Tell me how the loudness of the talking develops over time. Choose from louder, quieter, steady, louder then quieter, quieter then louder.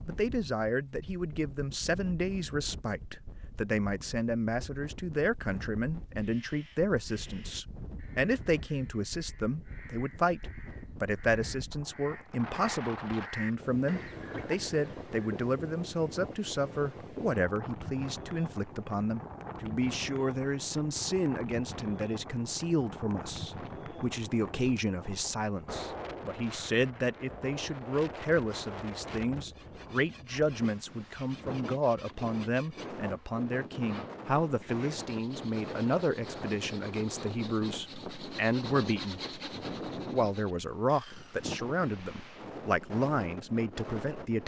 steady.